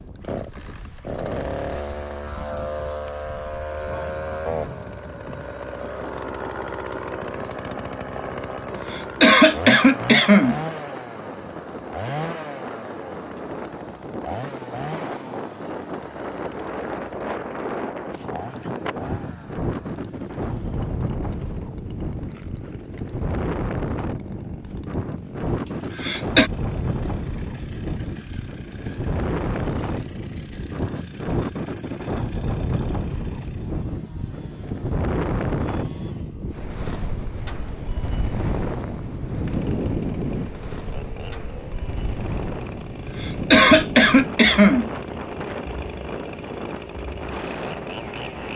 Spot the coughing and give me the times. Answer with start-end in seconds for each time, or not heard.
8.5-10.6, 25.6-26.5, 42.8-44.9.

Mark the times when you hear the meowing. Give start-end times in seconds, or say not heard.
not heard.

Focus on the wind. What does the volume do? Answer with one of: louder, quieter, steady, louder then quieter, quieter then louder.
louder.